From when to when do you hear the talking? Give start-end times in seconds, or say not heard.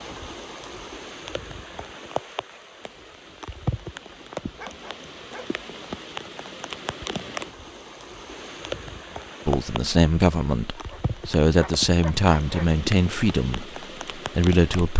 9.4-14.9.